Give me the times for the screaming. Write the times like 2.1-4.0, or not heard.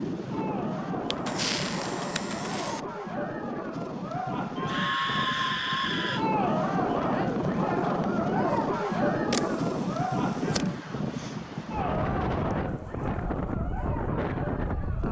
4.5-6.2.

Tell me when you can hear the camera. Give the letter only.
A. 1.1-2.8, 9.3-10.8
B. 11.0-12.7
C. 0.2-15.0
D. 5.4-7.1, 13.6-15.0
A.